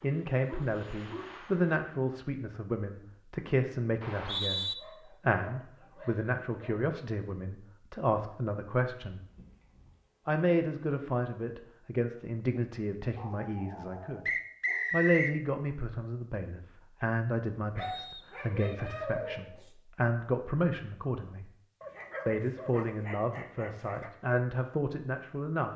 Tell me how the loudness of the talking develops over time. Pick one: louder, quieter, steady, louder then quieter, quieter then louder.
steady.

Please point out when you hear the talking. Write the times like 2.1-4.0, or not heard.
0.0-9.2, 10.2-14.3, 14.9-21.5, 22.2-25.7.